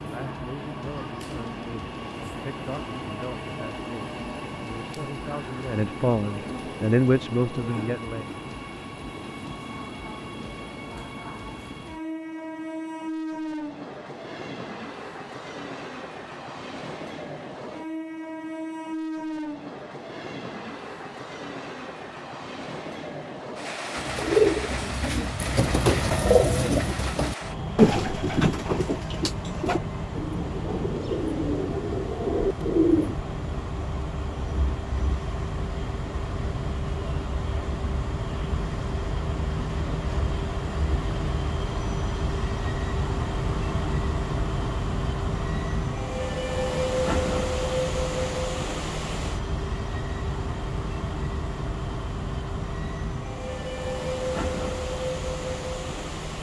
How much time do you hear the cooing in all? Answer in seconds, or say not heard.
9 s.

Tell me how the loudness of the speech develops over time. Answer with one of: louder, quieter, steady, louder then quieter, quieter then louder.
louder.